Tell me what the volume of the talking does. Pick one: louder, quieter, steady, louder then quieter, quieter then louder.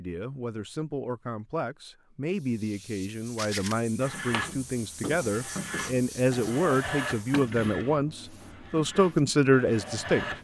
louder.